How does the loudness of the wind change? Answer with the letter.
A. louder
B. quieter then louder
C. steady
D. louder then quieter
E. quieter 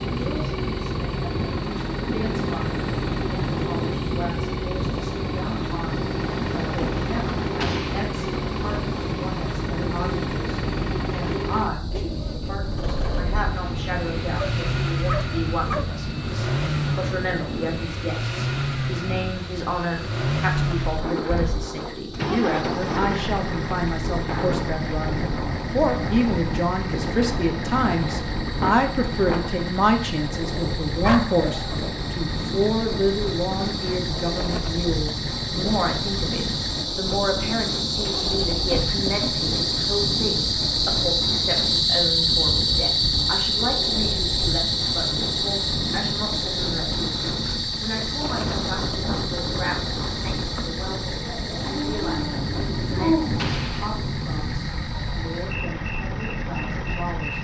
C.